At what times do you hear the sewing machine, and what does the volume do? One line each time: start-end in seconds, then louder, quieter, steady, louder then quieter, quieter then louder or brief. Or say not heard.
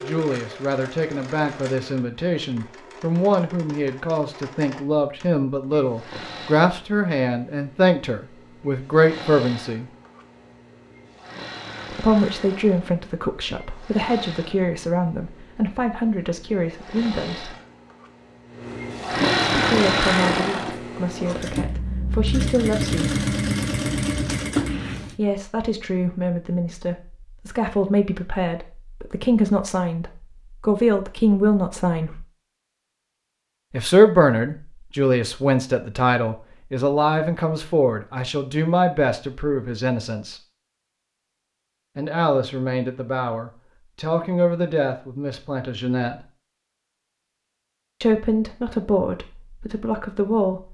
0.0-25.1 louder.